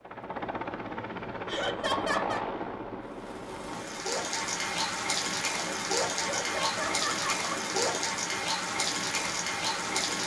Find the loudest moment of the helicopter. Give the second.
2 s.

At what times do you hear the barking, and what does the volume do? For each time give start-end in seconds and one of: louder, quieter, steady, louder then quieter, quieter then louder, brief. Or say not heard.
not heard.